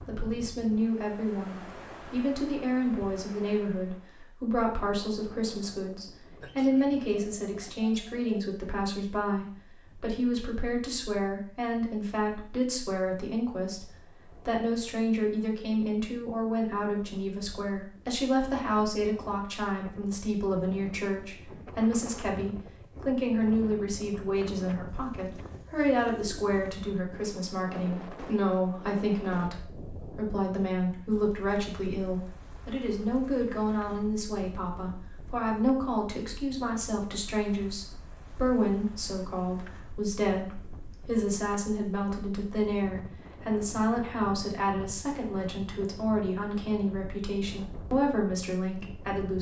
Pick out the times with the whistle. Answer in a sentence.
You can't hear the whistle here.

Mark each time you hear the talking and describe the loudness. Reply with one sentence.
You can hear the talking from 0.1 to 49.3 s, at a steady volume.